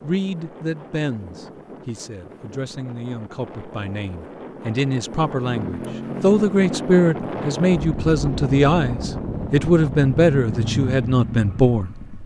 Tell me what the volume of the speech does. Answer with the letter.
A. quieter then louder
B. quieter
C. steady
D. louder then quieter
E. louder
E.